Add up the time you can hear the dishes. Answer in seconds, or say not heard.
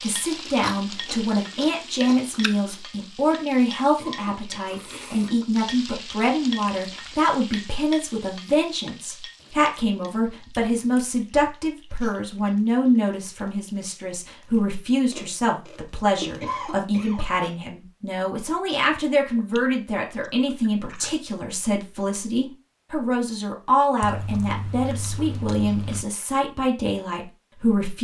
not heard.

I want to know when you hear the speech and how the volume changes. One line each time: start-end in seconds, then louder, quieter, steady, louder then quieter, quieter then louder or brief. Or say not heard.
0.0-27.9 steady.